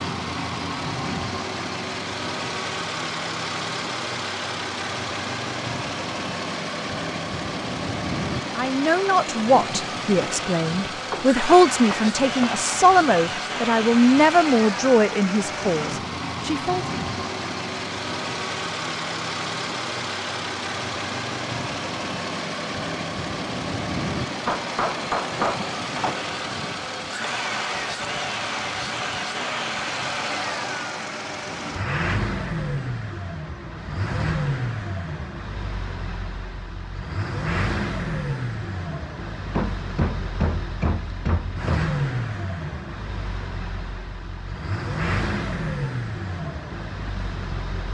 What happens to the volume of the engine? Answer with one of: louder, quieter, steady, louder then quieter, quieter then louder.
steady.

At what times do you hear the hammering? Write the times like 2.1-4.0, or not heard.
11.1-12.7, 24.4-26.2, 39.5-41.9.